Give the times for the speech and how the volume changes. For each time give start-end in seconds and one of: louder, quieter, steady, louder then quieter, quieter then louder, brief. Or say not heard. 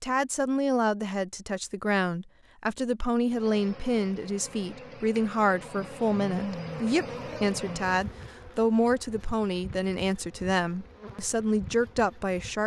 0.0-12.6 steady.